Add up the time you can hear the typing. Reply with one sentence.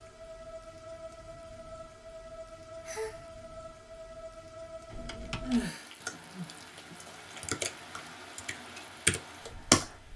You can hear the typing for 5 seconds altogether.